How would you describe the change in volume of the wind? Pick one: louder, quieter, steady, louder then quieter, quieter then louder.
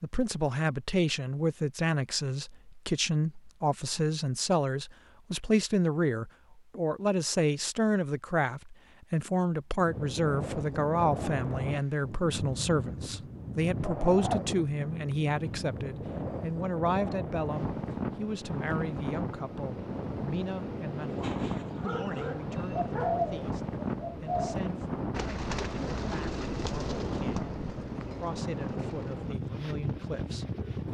steady.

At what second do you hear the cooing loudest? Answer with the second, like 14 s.
23 s.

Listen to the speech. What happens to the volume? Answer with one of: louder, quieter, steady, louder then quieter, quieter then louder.
quieter.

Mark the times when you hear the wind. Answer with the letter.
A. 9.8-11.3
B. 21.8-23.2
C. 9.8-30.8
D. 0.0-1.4
C.